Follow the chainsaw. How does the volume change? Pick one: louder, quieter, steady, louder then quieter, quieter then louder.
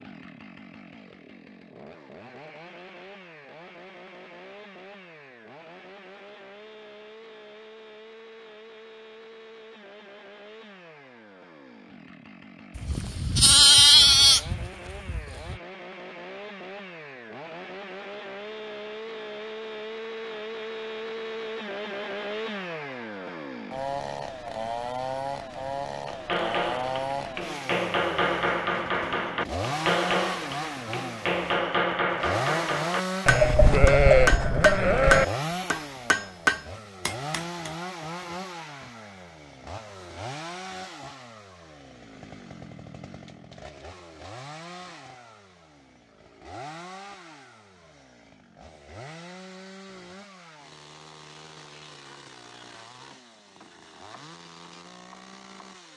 louder then quieter.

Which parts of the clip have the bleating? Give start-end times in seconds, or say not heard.
12.8-15.6, 33.2-35.2.